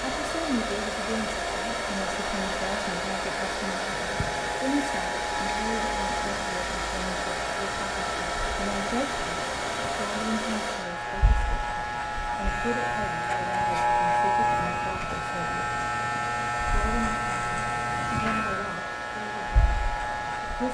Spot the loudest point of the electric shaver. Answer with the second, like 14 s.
14 s.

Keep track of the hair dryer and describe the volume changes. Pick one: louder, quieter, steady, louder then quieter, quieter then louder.
quieter.